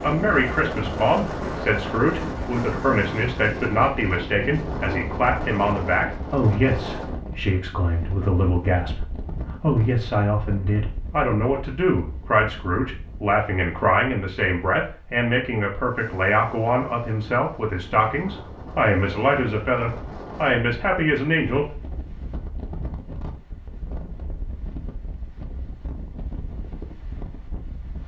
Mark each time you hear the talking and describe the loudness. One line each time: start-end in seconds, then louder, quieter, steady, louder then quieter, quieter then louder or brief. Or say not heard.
0.0-21.7 steady.